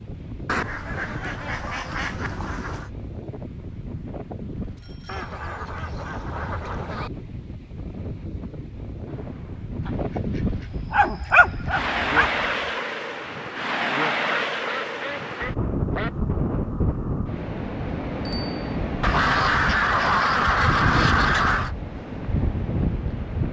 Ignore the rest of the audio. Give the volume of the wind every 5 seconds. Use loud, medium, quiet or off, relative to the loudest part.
medium, medium, loud, loud, loud.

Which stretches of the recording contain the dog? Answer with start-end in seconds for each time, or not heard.
10.7-12.8.